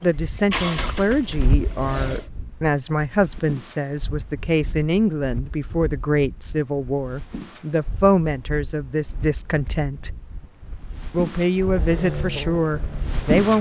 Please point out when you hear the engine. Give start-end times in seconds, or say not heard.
0.0-2.3, 11.6-13.4.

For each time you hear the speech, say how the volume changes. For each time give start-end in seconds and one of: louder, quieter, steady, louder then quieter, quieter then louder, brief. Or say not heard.
0.0-10.2 steady
11.1-13.5 brief.